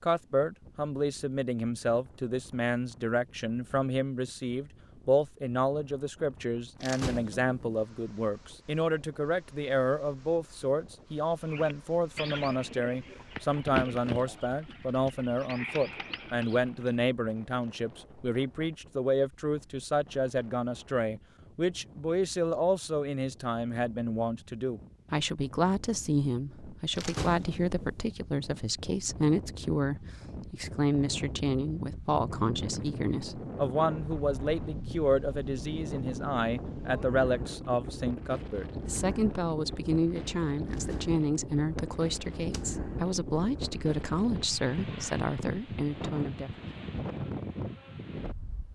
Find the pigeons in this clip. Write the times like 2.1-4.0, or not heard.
11.5-17.1.